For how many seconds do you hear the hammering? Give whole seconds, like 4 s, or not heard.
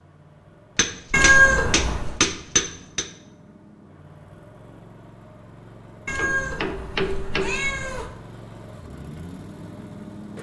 4 s.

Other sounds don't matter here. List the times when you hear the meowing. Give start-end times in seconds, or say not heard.
1.1-2.1, 6.0-8.1.